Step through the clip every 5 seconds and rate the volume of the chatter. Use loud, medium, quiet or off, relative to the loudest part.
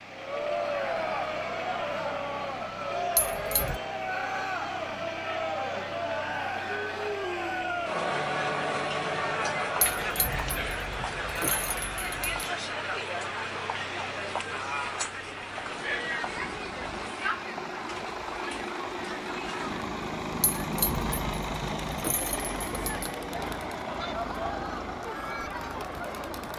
loud, loud, loud, medium, medium, medium.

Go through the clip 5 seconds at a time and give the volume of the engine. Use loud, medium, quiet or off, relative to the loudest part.
medium, medium, medium, loud, loud, medium.